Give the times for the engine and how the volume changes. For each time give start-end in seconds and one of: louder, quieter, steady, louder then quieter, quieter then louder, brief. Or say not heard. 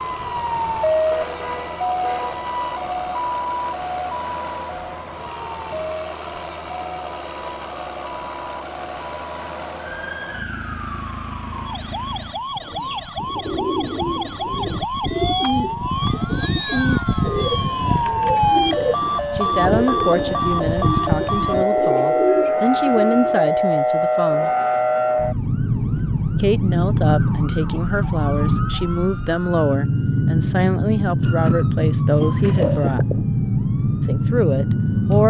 0.0-12.4 steady.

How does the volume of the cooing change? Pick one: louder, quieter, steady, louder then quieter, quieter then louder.
steady.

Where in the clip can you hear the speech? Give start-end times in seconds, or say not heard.
19.4-24.5, 26.4-33.0, 34.0-35.2.